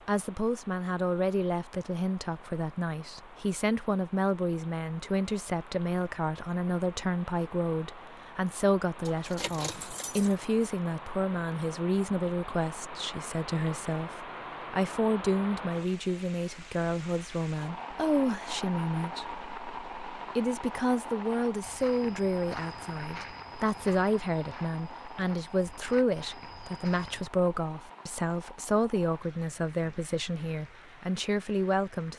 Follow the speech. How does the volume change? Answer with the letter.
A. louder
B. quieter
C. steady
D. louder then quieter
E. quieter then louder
C.